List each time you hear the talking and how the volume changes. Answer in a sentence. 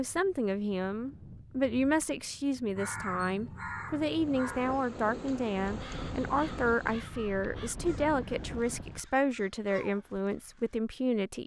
You can hear the talking from 0.0 to 11.4 s, at a steady volume.